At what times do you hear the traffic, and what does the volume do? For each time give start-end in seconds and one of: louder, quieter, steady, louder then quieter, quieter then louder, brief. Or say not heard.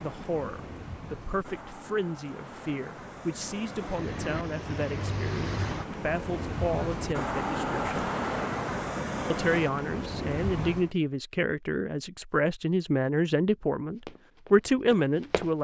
0.0-10.9 louder.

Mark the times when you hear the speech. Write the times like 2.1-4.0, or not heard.
0.0-8.1, 9.3-15.6.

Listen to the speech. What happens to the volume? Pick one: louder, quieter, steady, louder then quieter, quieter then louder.
louder.